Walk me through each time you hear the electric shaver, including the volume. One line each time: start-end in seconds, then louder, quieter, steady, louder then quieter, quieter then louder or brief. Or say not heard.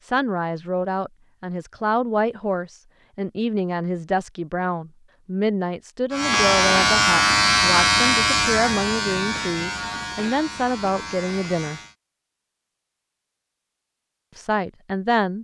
6.1-11.9 quieter.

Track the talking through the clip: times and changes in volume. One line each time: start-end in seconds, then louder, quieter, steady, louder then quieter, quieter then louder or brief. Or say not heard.
0.0-11.8 steady
14.3-15.3 brief.